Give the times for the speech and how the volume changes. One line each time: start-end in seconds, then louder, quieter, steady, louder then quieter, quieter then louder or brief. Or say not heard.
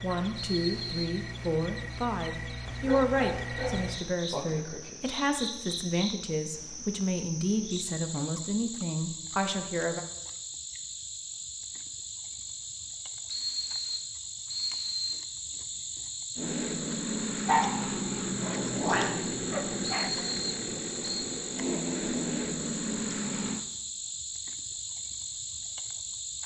0.0-10.1 steady.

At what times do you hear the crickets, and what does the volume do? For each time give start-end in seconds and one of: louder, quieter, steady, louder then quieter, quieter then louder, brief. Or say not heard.
0.0-26.4 steady.